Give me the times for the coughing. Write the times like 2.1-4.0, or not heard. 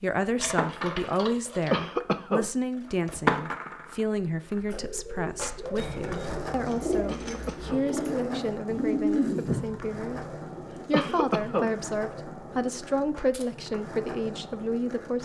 1.7-2.5, 7.0-7.8, 10.9-11.7.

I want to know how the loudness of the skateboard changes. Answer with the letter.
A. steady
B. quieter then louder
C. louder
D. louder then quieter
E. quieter
E.